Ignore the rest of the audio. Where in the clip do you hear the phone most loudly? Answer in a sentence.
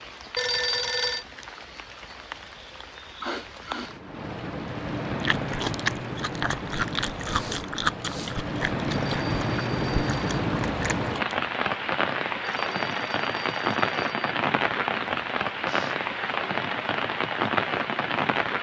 The loudest moment of the phone is at 1 second.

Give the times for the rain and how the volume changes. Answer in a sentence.
You can hear the rain from 0.0 to 18.5 s, getting louder.